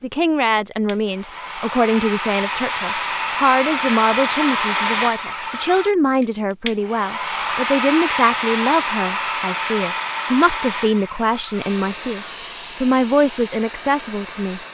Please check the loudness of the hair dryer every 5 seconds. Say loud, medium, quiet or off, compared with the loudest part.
loud, loud, medium.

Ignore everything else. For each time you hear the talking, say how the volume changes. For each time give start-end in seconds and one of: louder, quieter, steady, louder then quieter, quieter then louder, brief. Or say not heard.
0.0-14.6 steady.